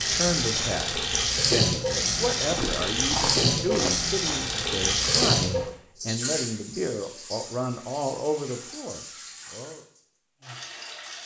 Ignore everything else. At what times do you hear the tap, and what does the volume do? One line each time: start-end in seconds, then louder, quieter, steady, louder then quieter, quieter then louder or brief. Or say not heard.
0.0-11.2 quieter.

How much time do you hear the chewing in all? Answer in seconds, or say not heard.
2 s.